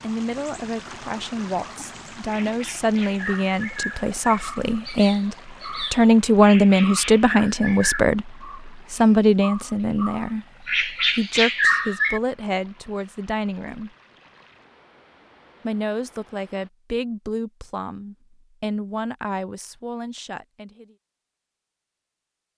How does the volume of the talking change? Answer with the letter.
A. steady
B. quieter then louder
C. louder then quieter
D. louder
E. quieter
C.